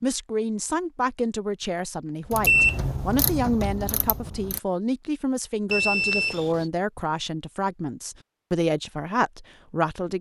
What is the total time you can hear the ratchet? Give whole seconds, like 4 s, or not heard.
2 s.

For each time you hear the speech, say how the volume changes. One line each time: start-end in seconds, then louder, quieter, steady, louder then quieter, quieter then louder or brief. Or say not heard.
0.0-10.1 steady.